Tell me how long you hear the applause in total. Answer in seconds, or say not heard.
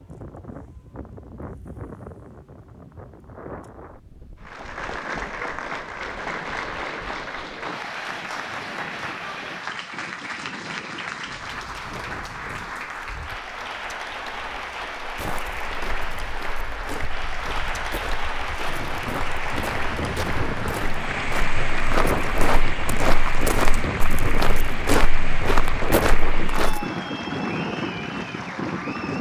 25 s.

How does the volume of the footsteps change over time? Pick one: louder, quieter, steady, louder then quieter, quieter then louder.
louder.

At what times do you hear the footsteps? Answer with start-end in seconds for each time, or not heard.
15.0-26.9.